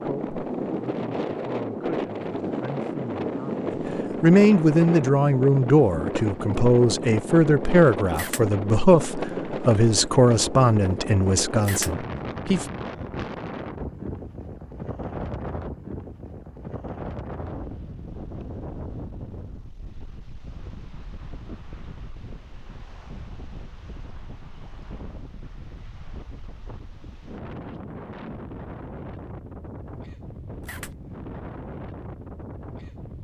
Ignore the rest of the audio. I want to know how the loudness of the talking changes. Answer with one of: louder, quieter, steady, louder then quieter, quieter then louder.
louder.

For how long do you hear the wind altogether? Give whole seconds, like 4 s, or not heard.
33 s.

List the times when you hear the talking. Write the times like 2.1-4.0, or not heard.
0.0-12.7.